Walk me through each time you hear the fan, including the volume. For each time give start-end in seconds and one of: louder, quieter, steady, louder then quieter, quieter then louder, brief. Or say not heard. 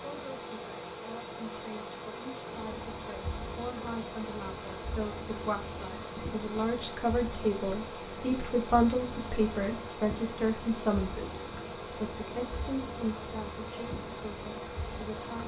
0.0-15.4 steady.